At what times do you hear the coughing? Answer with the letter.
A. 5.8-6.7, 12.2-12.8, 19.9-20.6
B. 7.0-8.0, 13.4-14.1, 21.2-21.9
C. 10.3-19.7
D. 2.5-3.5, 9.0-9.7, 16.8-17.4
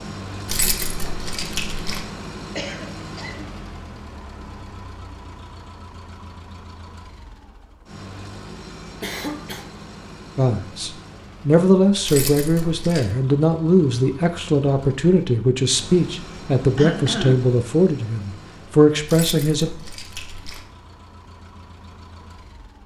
D.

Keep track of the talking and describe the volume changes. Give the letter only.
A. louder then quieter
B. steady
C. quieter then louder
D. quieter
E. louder
B.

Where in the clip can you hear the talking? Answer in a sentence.
The talking can be heard from 10.3 to 19.7 s.